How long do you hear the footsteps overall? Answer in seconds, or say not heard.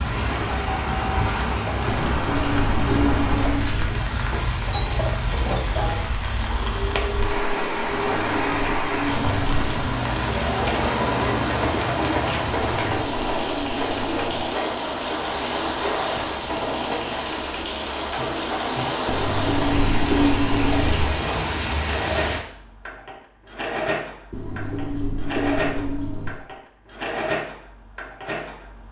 not heard.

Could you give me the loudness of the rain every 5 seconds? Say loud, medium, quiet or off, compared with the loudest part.
loud, loud, loud, loud, loud, off.